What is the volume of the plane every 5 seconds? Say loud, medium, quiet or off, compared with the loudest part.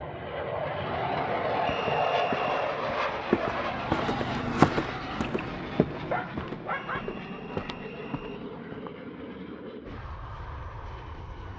loud, medium, quiet.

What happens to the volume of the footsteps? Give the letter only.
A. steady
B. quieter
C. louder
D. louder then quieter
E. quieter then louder
D.